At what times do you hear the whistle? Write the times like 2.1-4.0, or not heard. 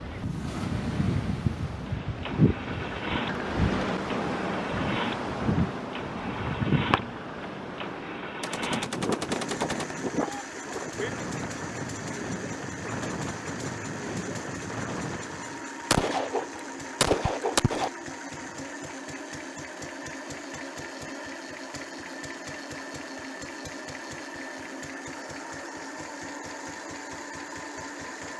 not heard.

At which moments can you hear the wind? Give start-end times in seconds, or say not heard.
0.0-15.6.